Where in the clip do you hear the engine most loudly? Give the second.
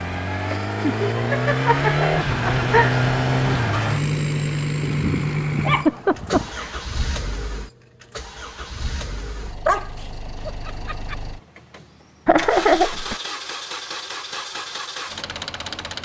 3 s.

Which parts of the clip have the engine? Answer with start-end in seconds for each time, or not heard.
0.0-16.0.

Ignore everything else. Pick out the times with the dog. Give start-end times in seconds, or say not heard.
4.8-6.5, 9.7-11.2.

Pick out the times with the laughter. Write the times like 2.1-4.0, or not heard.
0.5-3.0, 5.7-6.8, 12.2-13.2.